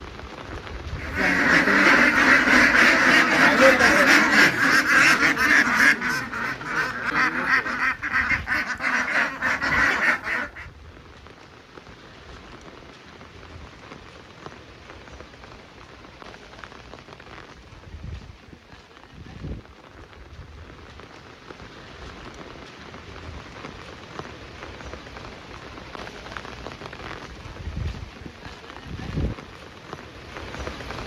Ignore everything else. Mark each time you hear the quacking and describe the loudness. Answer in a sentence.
You can hear the quacking from 1.0 to 10.7 s, getting quieter.